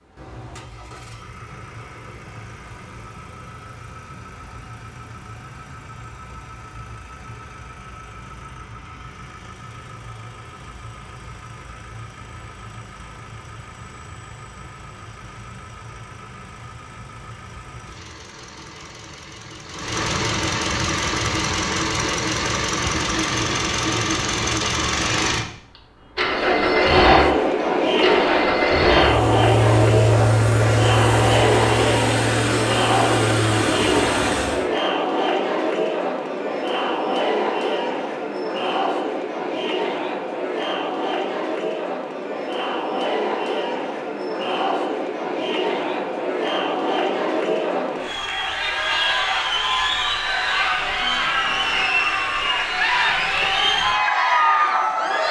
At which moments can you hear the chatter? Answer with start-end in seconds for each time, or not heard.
26.2-55.2.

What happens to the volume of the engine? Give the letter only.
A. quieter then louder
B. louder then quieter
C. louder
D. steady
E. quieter
C.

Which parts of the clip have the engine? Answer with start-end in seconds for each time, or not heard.
0.0-34.7.